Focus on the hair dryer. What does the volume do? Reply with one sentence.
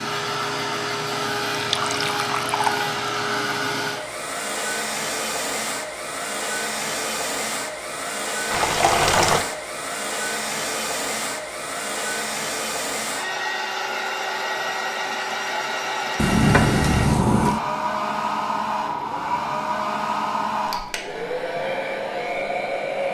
The loudness of the hair dryer stays about the same.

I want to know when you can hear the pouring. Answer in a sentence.
The pouring can be heard from 1.5 to 2.9 s, from 8.5 to 9.4 s and from 16.1 to 17.6 s.